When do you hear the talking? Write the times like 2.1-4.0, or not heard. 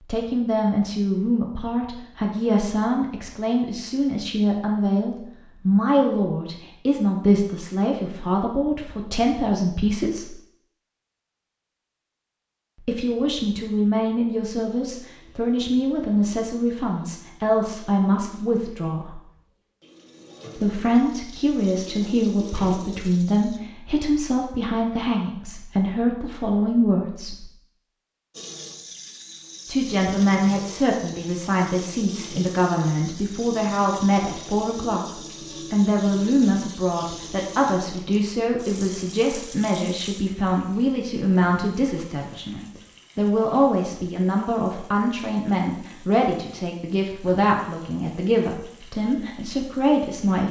0.1-10.3, 12.8-19.1, 20.6-27.4, 29.6-50.4.